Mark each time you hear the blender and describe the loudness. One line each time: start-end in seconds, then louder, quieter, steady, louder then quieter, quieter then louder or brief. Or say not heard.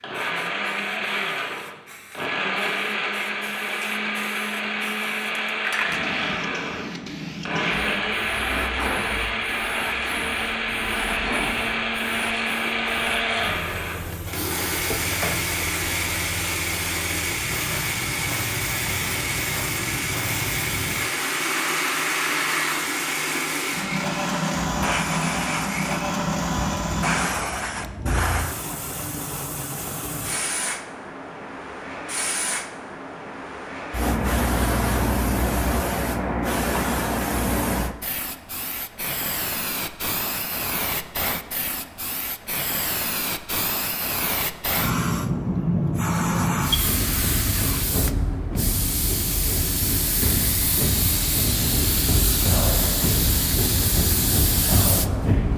0.0-27.3 steady.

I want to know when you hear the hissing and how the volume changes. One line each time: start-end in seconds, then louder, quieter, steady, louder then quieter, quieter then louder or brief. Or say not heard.
0.0-55.5 louder.